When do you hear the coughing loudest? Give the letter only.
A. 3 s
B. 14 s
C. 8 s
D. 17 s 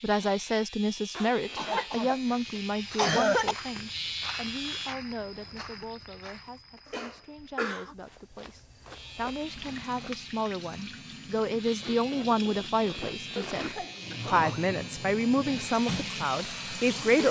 A.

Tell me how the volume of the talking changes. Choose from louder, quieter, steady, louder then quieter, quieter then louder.
quieter then louder.